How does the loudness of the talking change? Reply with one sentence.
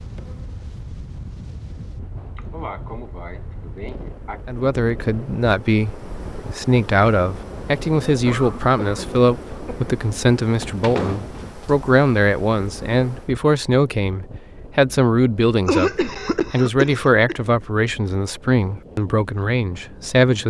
The volume of the talking stays about the same.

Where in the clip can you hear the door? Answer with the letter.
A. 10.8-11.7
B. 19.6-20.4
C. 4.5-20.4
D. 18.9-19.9
A.